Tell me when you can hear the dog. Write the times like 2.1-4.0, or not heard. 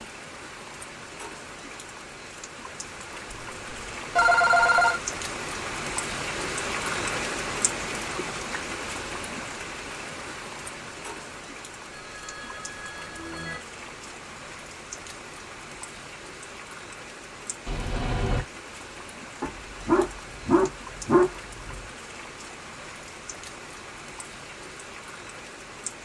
19.4-21.8.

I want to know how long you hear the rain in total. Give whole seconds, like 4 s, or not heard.
26 s.